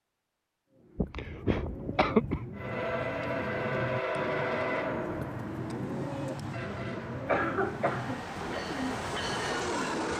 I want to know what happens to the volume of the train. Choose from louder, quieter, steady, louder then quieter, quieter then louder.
quieter then louder.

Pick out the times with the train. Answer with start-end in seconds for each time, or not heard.
2.5-10.1.